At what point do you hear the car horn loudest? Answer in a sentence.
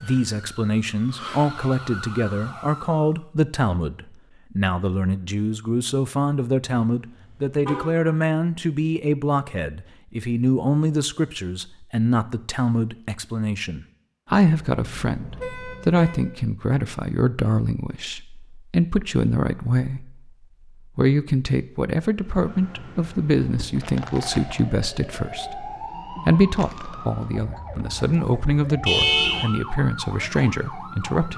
The loudest moment of the car horn is at 29 seconds.